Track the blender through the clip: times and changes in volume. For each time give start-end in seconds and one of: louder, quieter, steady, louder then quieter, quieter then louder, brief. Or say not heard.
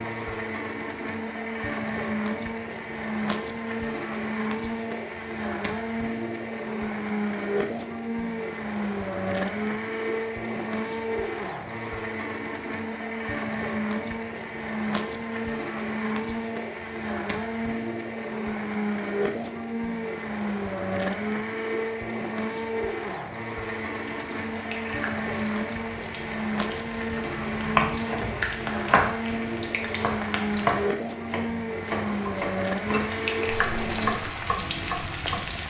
0.0-34.3 steady.